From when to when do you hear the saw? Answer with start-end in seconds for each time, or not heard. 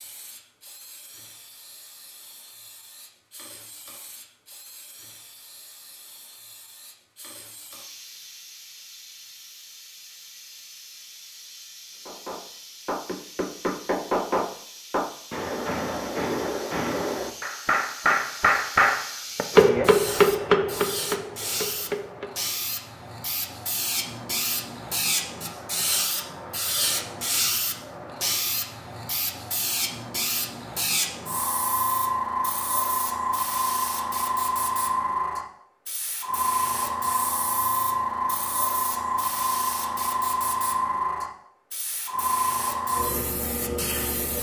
not heard.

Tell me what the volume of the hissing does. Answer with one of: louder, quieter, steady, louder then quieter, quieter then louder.
louder.